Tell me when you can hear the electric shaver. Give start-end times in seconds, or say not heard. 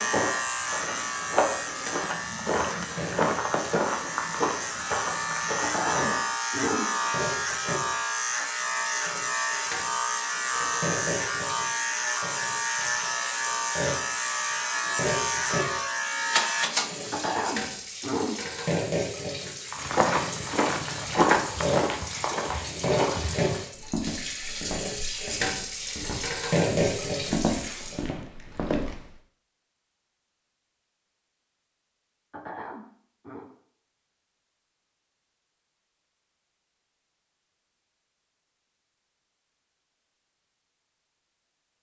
0.0-17.2.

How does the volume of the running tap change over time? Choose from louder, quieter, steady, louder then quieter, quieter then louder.
louder.